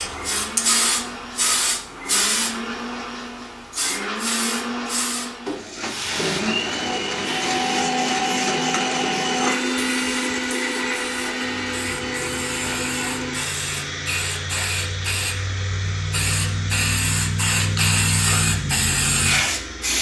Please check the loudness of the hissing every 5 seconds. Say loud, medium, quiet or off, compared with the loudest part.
loud, medium, medium, loud.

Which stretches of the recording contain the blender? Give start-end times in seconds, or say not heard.
0.0-19.9.